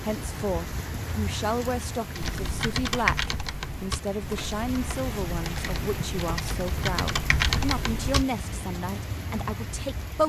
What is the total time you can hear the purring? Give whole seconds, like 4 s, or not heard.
not heard.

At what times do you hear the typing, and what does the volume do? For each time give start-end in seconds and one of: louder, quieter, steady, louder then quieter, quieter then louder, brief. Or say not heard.
2.1-8.2 quieter then louder.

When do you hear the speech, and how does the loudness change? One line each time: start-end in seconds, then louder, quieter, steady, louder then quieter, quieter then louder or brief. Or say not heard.
0.0-10.2 steady.